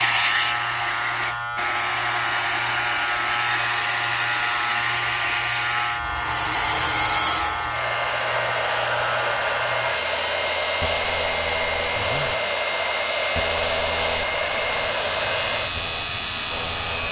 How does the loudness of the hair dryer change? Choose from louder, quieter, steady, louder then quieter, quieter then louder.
steady.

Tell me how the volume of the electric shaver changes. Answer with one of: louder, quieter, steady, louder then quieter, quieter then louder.
steady.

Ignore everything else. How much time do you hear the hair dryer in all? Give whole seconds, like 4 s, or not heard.
17 s.